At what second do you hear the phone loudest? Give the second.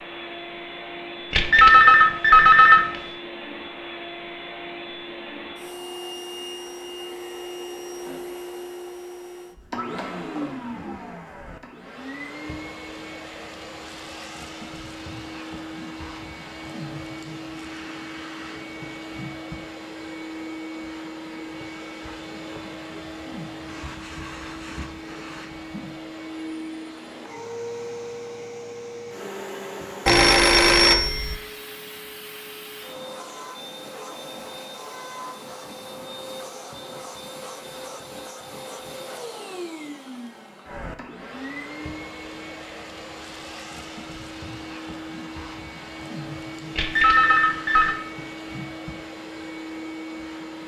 2 s.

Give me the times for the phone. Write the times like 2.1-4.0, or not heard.
1.3-2.9, 30.1-31.4, 46.8-48.0.